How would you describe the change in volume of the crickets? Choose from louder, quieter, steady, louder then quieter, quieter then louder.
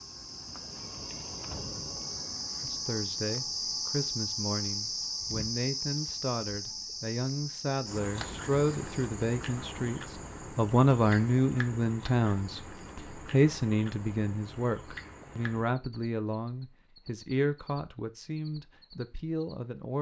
quieter.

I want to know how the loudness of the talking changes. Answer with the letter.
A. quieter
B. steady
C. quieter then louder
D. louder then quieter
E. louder
D.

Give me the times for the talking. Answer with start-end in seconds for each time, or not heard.
2.6-19.9.